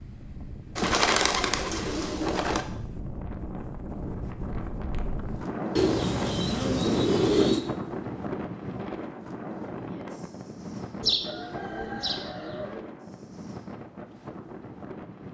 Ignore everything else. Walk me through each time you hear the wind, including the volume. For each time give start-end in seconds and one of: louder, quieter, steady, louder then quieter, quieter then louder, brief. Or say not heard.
0.0-15.2 louder then quieter.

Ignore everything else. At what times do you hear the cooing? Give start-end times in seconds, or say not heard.
0.8-2.6, 5.8-7.7, 11.0-12.8.